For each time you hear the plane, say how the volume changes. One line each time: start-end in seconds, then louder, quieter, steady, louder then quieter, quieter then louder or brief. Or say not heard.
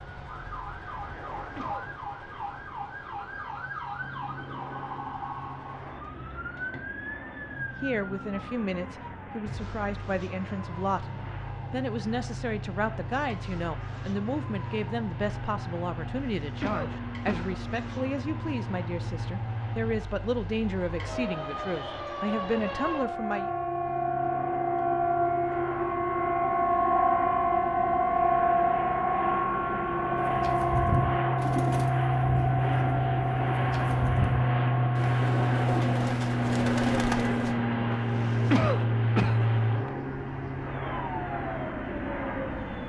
0.0-42.8 louder.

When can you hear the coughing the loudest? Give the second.
39 s.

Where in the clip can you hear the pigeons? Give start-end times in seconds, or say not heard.
30.1-37.5.